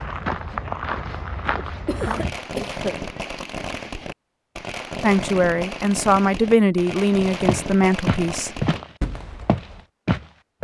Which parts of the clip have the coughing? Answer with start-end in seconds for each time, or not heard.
1.9-3.0.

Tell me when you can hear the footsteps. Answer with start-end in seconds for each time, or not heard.
0.0-2.3, 7.5-10.5.